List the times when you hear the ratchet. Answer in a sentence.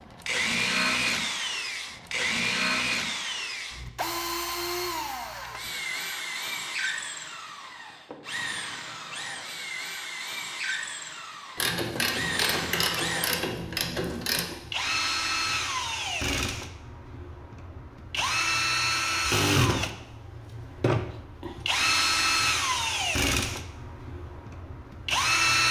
The ratchet can be heard from 11.6 to 14.4 s.